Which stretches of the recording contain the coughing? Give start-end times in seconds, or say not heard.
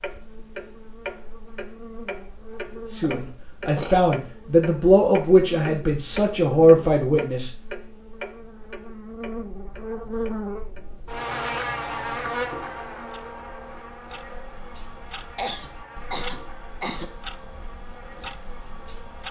3.0-4.0, 15.3-17.1.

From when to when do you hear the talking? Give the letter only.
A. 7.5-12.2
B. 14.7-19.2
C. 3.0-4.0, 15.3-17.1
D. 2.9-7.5
D.